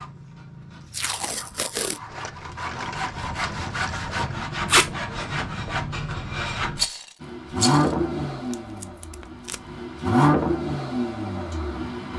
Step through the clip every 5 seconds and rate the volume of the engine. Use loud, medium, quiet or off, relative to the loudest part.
off, loud, loud.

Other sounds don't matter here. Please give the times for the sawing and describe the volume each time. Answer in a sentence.
You can hear the sawing from 0.0 to 6.8 s, getting louder.